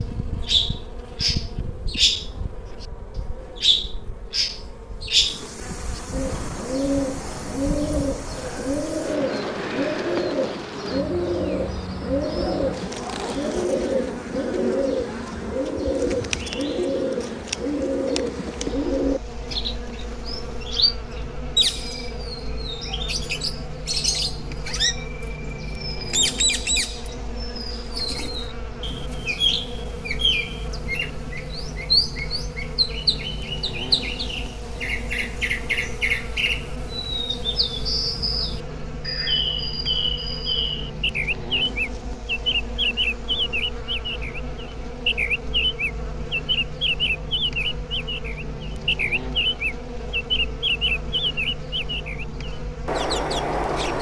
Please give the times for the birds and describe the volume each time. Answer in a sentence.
You can hear the birds from 0.0 to 53.9 s, at a steady volume.